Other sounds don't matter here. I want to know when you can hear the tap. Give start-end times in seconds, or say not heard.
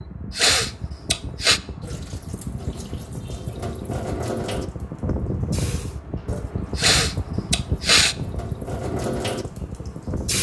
1.8-10.3.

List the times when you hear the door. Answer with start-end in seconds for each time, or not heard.
not heard.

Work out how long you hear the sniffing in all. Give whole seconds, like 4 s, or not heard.
3 s.